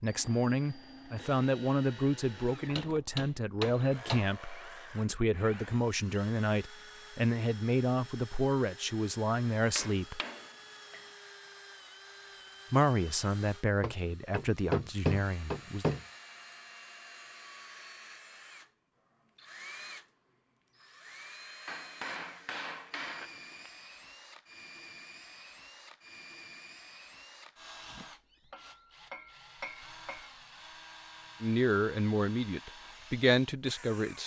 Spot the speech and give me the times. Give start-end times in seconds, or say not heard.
0.0-10.2, 12.7-15.8, 31.4-34.2.